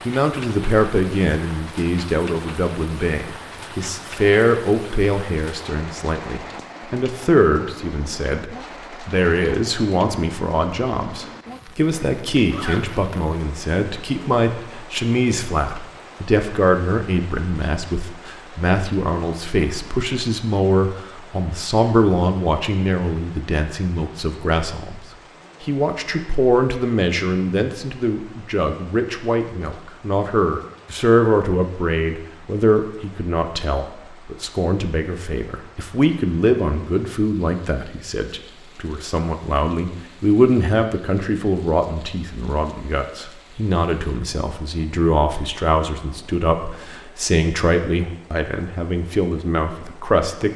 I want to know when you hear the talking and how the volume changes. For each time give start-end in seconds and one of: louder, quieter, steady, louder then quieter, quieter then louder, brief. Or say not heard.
0.1-50.5 steady.